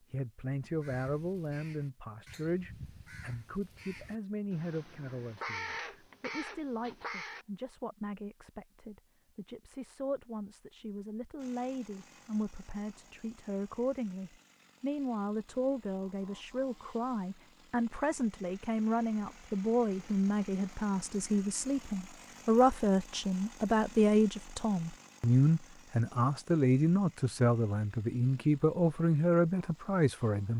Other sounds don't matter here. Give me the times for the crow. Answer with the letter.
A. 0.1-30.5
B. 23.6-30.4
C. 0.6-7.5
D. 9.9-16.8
C.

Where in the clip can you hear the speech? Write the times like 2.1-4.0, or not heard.
0.1-30.5.